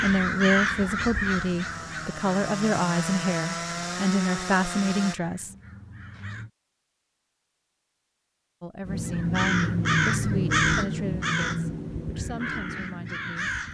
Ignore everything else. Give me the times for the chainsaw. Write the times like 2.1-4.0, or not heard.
0.1-5.2.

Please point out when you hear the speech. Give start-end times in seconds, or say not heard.
0.0-5.5, 8.6-13.5.